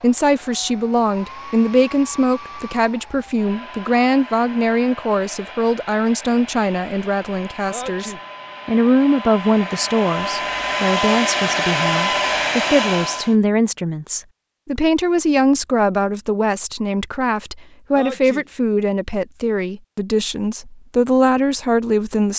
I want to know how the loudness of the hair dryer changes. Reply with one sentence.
The loudness of the hair dryer goes up.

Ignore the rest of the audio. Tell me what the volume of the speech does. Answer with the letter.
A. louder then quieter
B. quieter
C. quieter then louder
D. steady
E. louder
D.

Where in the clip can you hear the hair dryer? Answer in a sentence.
You can hear the hair dryer from 0.0 to 13.3 s.